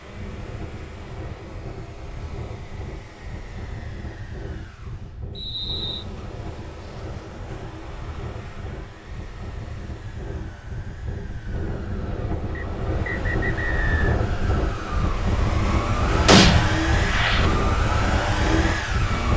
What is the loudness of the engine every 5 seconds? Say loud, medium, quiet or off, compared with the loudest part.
quiet, quiet, quiet, loud.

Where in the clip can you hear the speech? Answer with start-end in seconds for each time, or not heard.
not heard.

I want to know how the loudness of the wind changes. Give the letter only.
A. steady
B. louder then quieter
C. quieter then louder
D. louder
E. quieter
D.